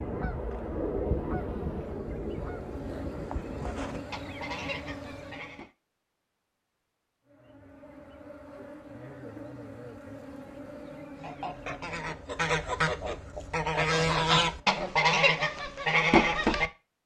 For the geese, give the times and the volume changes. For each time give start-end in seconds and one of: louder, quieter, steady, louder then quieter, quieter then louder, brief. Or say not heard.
0.0-5.7 quieter
11.2-16.7 louder.